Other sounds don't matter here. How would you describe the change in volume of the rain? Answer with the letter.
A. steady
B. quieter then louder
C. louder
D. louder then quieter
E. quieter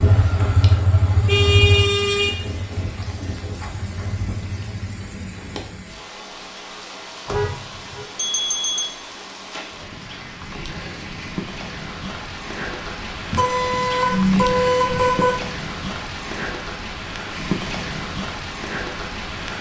C.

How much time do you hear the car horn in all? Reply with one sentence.
The car horn can be heard for 4 seconds in total.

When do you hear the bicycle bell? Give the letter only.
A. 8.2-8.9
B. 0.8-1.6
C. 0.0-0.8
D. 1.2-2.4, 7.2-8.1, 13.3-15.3
A.